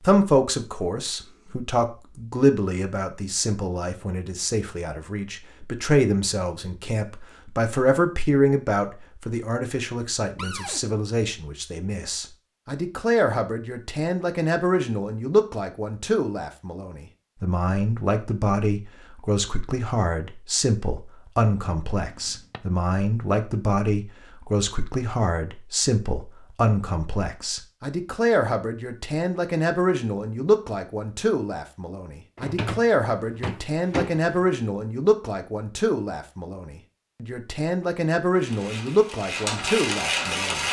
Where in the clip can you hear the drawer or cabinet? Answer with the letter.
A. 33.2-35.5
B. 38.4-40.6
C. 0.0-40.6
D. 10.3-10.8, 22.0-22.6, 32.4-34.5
D.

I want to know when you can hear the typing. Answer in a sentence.
You can't hear the typing here.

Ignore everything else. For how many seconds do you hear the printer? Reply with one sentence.
You can hear the printer for 2 seconds altogether.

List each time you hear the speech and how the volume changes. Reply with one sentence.
The speech can be heard from 0.0 to 40.6 s, at a steady volume.